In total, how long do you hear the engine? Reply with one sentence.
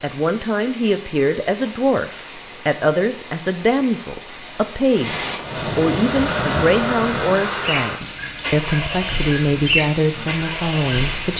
You can hear the engine for 5 seconds altogether.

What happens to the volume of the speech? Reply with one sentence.
The loudness of the speech stays about the same.